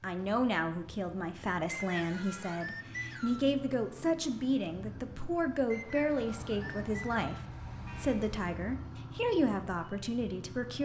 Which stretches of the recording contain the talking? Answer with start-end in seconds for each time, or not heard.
0.0-7.3, 8.0-10.8.